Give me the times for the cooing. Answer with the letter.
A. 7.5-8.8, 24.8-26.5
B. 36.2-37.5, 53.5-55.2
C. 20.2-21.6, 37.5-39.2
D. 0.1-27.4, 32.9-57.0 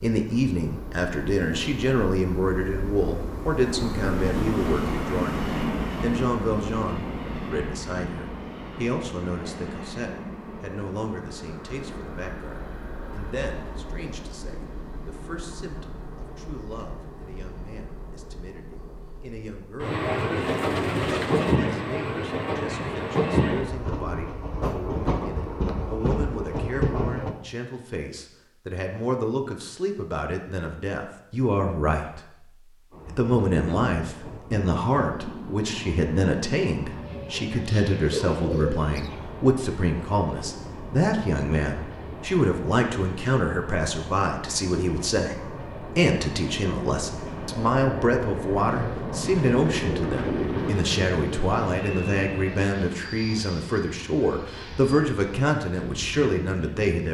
C.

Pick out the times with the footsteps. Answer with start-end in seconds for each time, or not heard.
not heard.